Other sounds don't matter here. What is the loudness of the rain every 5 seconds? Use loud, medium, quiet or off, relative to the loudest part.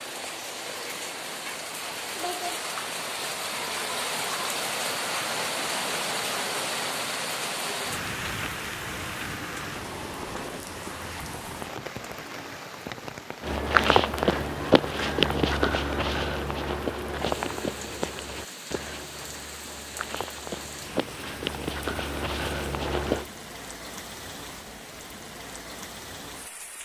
loud, loud, medium, medium, medium, medium.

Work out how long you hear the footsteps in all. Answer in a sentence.
The footsteps can be heard for 10 seconds in total.